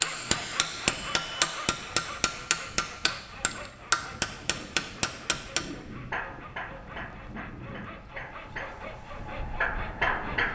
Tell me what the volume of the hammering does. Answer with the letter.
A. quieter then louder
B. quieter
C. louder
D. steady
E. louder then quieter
A.